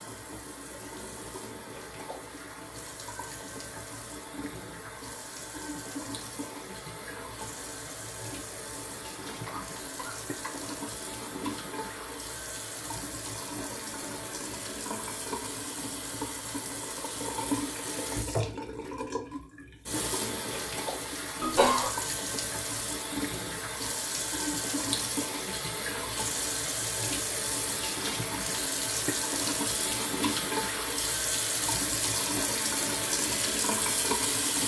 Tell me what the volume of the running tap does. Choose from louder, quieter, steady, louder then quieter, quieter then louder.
louder.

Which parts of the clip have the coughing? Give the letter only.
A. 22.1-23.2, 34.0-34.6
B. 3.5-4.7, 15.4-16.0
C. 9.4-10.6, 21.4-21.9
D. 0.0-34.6
C.